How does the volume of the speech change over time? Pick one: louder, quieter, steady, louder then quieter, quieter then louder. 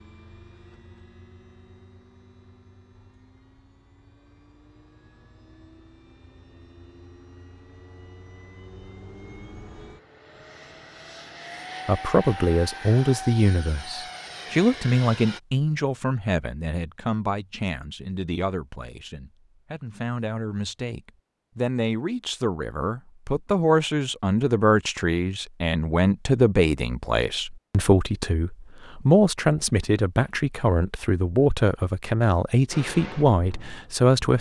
quieter then louder.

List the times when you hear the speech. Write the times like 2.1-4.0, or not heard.
11.8-34.3.